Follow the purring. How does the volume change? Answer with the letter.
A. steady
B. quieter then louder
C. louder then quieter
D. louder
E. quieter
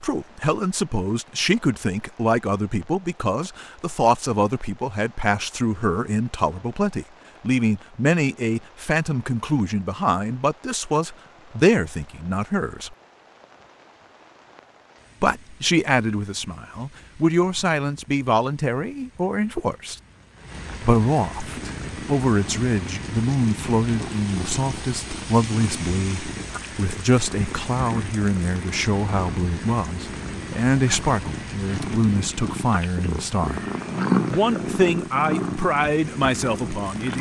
D.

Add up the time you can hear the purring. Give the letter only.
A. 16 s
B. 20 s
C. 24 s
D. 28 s
A.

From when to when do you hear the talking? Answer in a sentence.
The talking can be heard from 0.0 to 12.9 s, from 15.2 to 19.9 s, from 20.8 to 33.6 s and from 34.3 to 37.1 s.